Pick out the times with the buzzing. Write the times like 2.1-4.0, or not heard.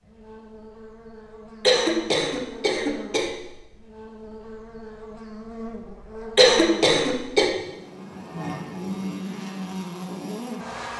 0.0-10.9.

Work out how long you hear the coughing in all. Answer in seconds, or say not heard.
3 s.